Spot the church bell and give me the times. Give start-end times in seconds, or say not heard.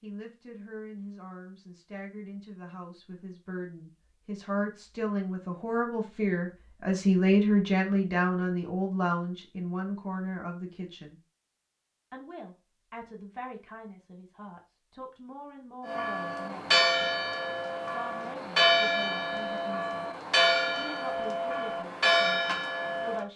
15.8-23.2.